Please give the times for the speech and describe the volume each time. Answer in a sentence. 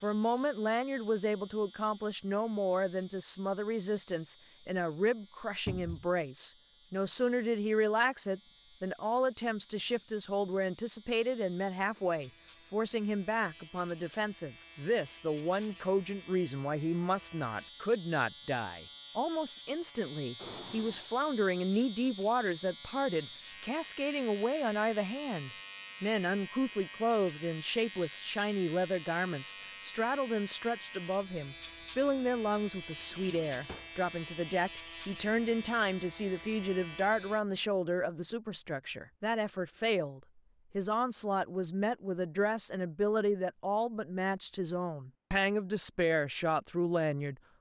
The speech can be heard from 0.0 to 47.4 s, at a steady volume.